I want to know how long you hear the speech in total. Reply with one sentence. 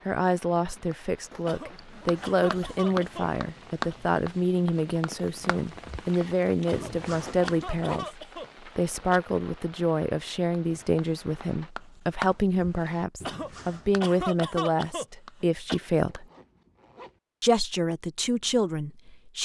You can hear the speech for 18 seconds altogether.